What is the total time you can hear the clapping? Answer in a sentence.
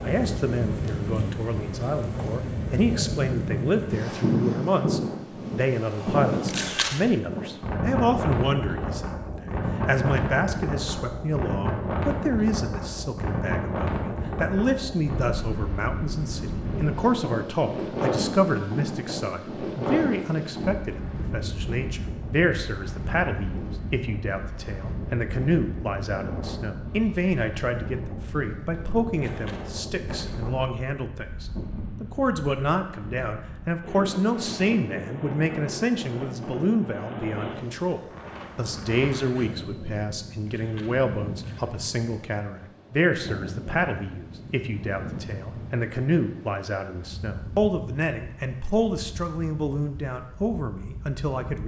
The clapping can't be heard in this clip.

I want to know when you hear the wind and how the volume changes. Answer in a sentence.
You can hear the wind from 0.0 to 51.6 s, getting quieter.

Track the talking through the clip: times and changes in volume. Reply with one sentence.
You can hear the talking from 0.0 to 51.6 s, at a steady volume.